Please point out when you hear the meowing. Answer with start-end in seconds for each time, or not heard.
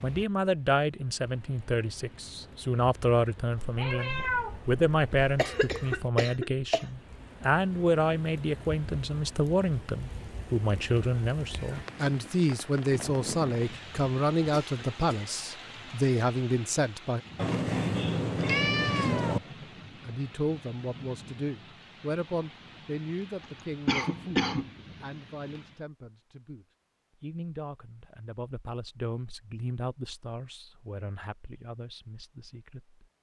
3.5-5.4, 17.4-19.4.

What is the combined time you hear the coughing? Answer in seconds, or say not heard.
4 s.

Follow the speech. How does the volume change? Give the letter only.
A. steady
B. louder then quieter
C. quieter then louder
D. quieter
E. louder
D.